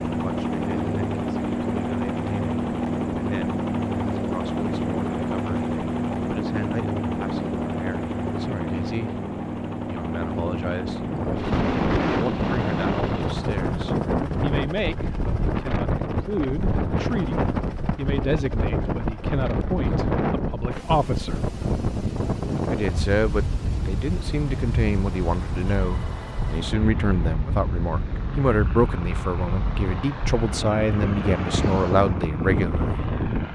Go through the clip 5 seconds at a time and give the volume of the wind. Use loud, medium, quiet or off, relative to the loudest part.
off, off, loud, loud, loud, medium, loud.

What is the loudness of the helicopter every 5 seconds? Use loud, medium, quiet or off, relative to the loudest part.
loud, loud, medium, medium, quiet, quiet, quiet.